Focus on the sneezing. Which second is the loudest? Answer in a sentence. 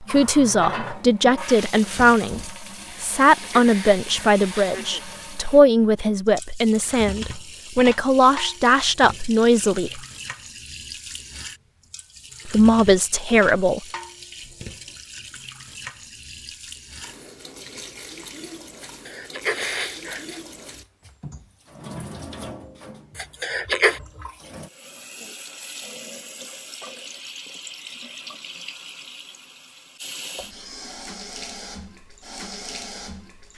The volume of the sneezing peaks at 24 seconds.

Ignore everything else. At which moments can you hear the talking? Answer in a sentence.
You can hear the talking from 0.0 to 10.0 s and from 12.4 to 13.8 s.